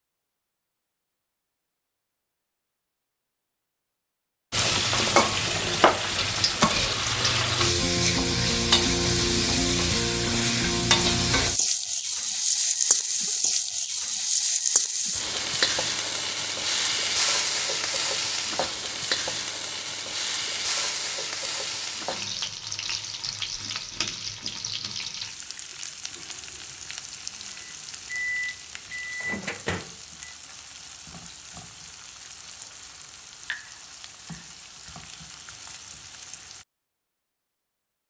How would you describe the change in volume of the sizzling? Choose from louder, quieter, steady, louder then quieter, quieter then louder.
quieter.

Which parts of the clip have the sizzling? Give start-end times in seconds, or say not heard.
4.5-36.6.